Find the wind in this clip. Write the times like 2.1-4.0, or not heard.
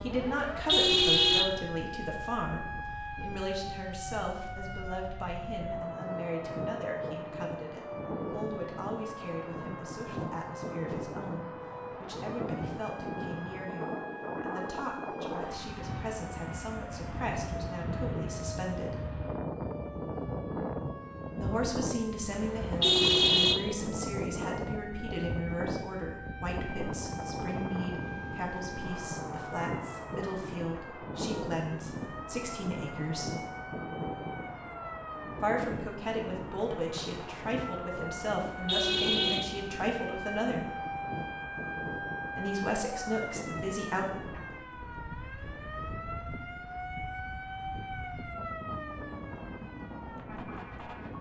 0.0-51.1.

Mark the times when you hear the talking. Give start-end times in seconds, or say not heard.
0.0-19.1, 21.4-33.4, 35.4-40.7, 42.4-44.0.